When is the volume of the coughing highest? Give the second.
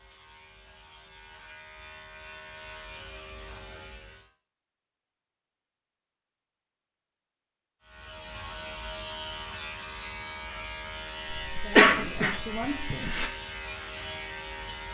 12 s.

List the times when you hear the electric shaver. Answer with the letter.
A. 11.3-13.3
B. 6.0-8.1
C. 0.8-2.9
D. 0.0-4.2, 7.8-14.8
D.